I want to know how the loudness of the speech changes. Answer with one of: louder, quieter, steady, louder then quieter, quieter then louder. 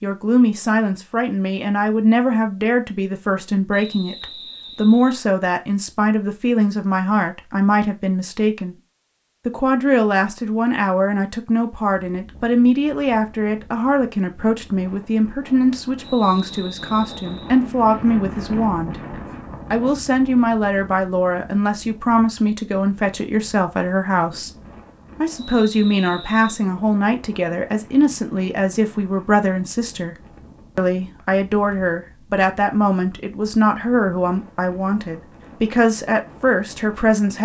steady.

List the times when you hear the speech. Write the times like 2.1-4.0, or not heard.
0.0-8.8, 9.4-18.9, 19.7-24.5, 25.2-30.1, 30.8-37.3.